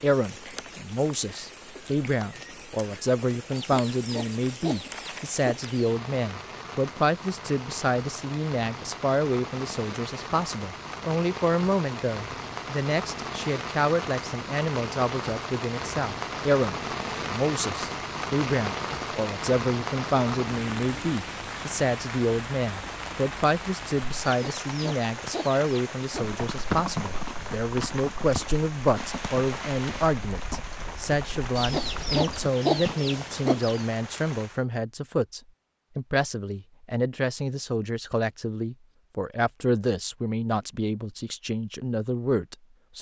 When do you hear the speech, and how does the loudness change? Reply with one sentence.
You can hear the speech from 0.0 to 42.9 s, at a steady volume.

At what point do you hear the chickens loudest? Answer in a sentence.
The volume of the chickens peaks at 33 seconds.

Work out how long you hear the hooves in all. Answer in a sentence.
The hooves can be heard for 7 seconds in total.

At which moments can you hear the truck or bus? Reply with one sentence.
The truck or bus can't be heard in this clip.